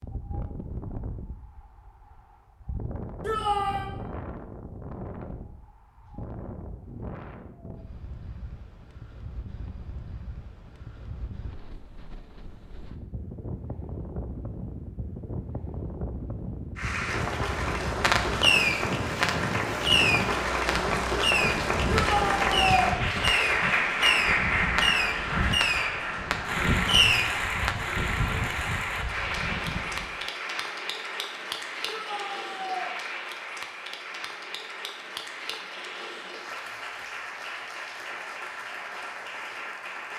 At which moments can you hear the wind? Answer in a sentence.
The wind can be heard from 0.0 to 30.2 s.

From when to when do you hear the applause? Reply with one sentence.
The applause can be heard from 16.8 to 40.1 s.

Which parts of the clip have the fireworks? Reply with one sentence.
The fireworks can be heard from 18.0 to 27.8 s.